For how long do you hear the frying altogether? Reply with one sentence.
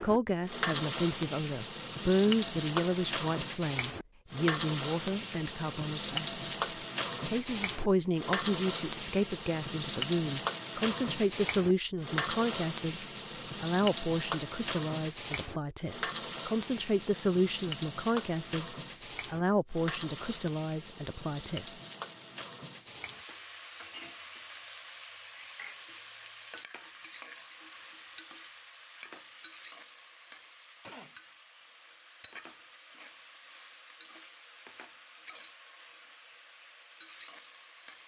You can hear the frying for 38 seconds altogether.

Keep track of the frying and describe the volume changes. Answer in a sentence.
The volume of the frying goes down.